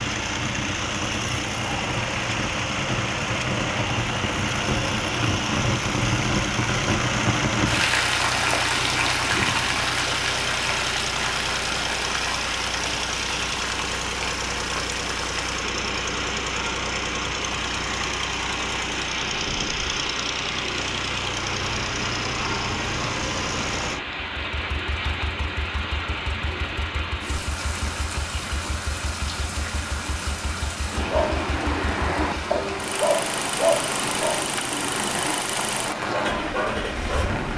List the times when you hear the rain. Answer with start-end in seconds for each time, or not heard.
0.0-37.5.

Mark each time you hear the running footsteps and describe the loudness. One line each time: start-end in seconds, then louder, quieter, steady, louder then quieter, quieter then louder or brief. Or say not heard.
not heard.